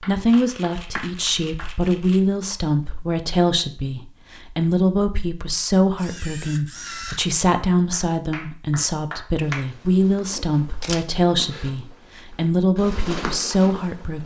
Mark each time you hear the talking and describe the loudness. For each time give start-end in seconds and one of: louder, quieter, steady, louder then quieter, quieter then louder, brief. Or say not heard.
0.0-14.2 steady.